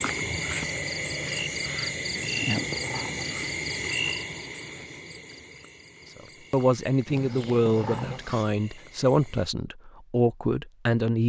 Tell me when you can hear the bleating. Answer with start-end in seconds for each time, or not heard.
not heard.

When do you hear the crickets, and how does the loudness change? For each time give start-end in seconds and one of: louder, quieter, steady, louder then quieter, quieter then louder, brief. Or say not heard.
0.0-9.5 quieter.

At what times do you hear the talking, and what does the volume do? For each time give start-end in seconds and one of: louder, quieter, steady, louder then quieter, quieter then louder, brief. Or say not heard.
6.2-11.2 steady.